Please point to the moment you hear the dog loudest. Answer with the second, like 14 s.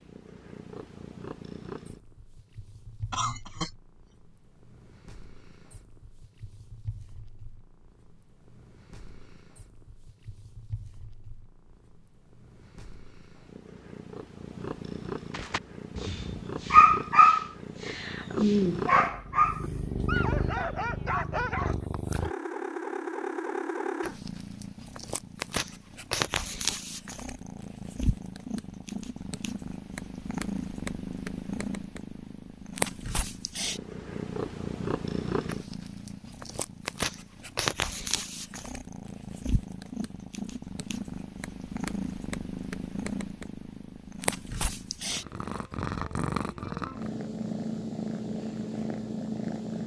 17 s.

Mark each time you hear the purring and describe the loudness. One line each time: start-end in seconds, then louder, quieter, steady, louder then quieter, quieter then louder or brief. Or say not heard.
0.0-49.8 louder.